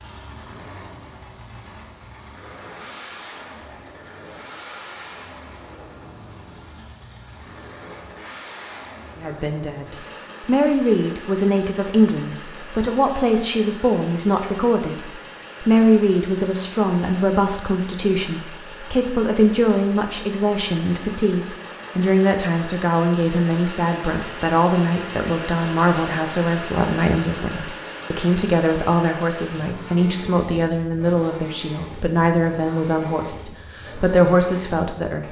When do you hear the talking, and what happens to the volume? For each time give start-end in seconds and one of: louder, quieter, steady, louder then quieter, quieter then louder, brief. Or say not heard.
9.2-35.2 steady.